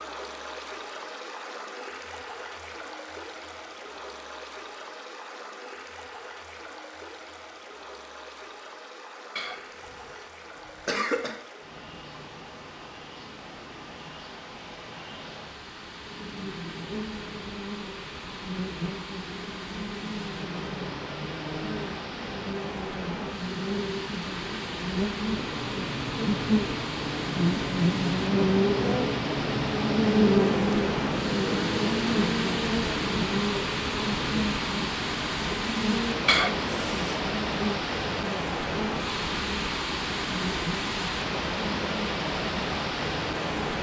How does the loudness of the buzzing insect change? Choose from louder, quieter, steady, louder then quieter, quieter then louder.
louder then quieter.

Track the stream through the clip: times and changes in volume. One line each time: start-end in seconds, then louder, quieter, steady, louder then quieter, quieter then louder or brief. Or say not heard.
0.0-43.7 louder.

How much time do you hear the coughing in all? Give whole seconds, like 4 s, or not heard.
3 s.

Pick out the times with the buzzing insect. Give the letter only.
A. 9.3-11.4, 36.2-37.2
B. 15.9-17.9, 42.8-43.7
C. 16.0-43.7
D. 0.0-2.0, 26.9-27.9
C.